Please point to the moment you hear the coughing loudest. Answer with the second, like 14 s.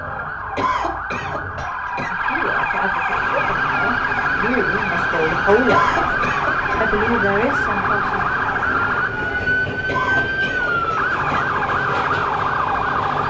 6 s.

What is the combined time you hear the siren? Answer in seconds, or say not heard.
13 s.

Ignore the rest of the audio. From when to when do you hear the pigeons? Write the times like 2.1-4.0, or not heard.
not heard.